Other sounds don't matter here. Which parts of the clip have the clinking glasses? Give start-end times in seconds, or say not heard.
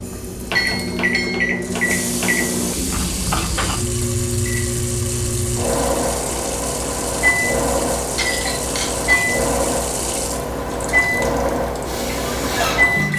0.6-1.4, 8.2-9.3.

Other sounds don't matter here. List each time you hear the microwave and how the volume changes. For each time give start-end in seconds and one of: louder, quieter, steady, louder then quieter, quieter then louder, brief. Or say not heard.
0.0-13.1 steady.